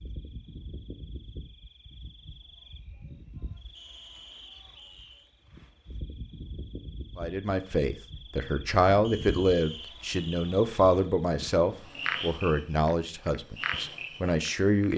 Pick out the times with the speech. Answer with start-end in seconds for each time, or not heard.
7.2-14.9.